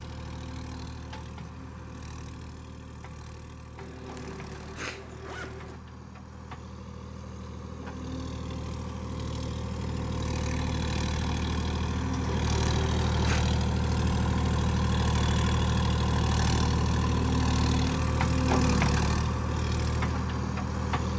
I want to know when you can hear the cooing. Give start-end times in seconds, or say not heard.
not heard.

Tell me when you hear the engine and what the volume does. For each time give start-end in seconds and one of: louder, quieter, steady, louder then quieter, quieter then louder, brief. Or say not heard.
0.0-21.1 louder.